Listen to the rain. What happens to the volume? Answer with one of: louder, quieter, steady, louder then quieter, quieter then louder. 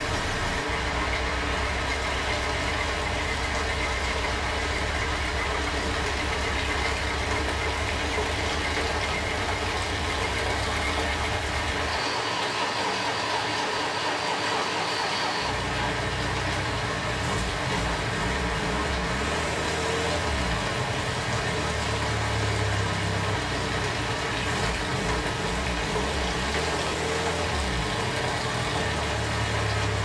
steady.